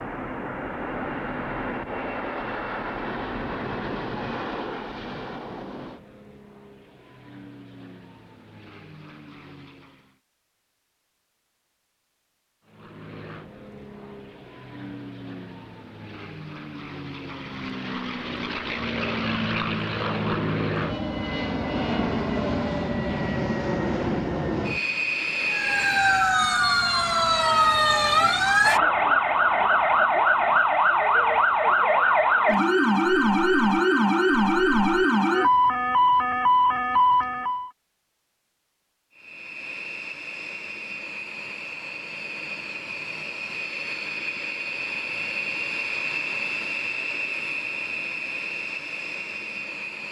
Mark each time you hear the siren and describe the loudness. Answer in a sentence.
You can hear the siren from 25.5 to 37.7 s, at a steady volume.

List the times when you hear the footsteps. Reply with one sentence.
You can't hear the footsteps here.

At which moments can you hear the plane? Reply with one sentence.
You can hear the plane from 0.0 to 10.2 s, from 12.7 to 26.4 s and from 39.1 to 50.0 s.